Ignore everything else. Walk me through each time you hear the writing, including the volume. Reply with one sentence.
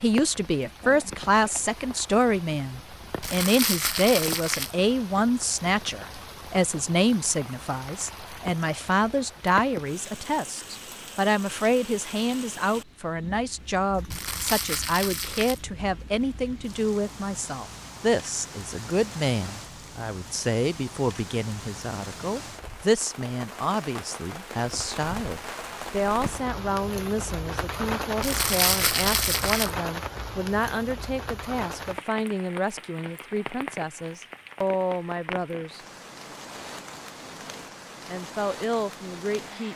The writing can't be heard in this clip.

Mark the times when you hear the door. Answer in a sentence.
The door can't be heard in this clip.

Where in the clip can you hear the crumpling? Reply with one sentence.
The crumpling can be heard from 3.2 to 4.8 s, from 14.1 to 15.6 s and from 28.2 to 29.7 s.